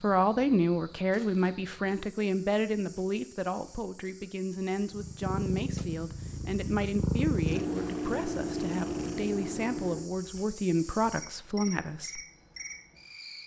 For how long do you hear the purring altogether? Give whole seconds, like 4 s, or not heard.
5 s.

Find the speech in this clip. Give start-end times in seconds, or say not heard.
0.0-12.2.